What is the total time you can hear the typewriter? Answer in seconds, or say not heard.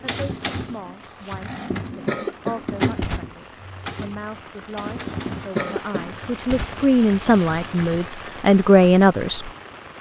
8 s.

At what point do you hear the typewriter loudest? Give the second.
3 s.